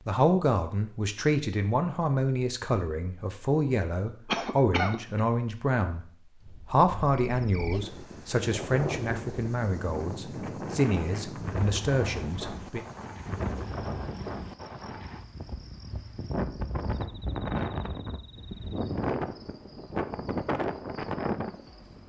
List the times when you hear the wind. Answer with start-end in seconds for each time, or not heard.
6.4-22.0.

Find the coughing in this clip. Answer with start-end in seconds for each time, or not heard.
4.2-5.2.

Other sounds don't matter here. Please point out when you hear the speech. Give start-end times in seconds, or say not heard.
0.1-6.0, 6.7-12.8.